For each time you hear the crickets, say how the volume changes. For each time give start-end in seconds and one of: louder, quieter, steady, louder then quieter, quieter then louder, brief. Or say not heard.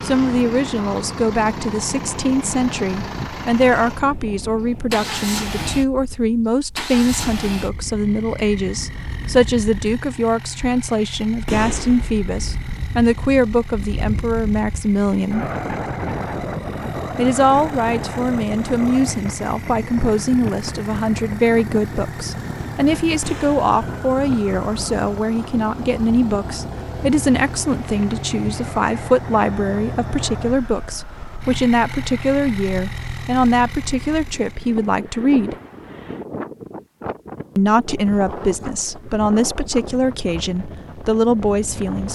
not heard.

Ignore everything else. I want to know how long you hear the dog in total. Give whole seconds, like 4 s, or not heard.
not heard.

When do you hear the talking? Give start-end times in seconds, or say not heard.
0.0-15.4, 17.1-35.5, 37.5-42.1.